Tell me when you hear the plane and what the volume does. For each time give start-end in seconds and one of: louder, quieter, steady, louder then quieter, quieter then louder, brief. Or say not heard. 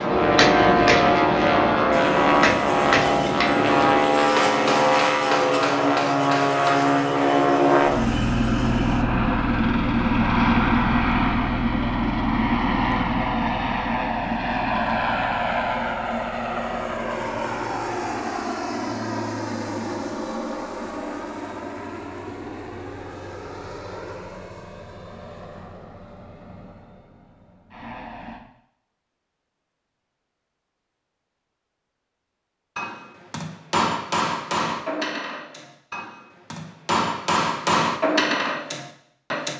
0.0-28.4 quieter.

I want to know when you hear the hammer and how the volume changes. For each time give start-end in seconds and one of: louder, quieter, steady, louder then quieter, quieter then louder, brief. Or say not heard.
0.0-6.7 quieter
32.8-39.5 quieter then louder.